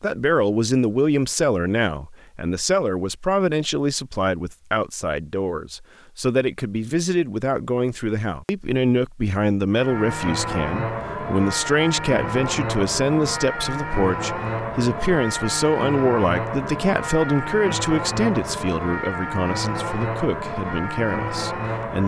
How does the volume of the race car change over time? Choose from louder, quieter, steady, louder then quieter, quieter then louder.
steady.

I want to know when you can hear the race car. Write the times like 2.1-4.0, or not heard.
9.7-22.0.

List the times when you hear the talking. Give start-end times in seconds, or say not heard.
0.0-22.0.